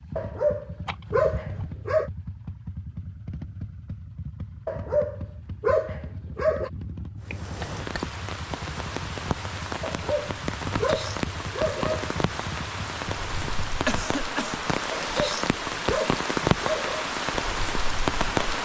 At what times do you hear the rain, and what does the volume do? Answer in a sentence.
You can hear the rain from 7.2 to 18.6 s, getting louder.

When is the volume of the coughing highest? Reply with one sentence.
The volume of the coughing peaks at 14 seconds.